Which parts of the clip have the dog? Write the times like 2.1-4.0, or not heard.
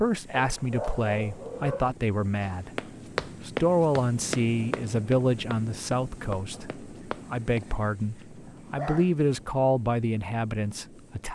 0.3-1.9, 6.5-9.1.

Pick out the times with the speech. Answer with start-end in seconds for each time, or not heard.
0.0-2.7, 3.4-11.2.